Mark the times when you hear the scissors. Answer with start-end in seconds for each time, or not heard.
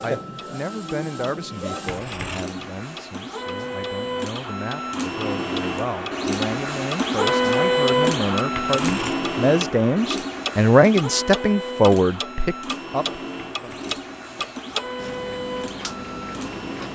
1.9-2.5, 8.5-9.2, 13.4-15.1.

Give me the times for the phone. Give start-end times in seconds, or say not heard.
not heard.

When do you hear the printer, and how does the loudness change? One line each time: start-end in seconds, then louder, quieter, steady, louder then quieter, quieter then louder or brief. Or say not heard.
0.0-16.9 louder then quieter.